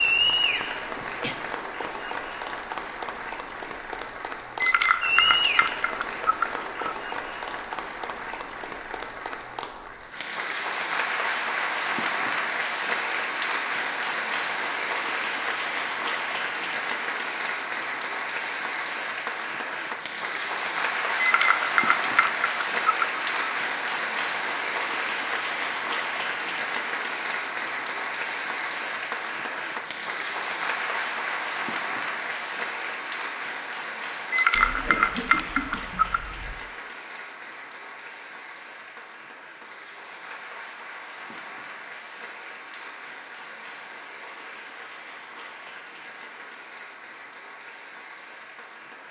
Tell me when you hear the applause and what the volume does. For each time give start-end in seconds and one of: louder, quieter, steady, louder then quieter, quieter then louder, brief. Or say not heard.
0.0-49.0 quieter.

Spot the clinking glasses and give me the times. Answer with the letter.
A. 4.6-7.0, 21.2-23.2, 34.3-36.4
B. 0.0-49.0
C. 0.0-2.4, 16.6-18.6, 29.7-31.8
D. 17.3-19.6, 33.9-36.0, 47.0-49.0
A.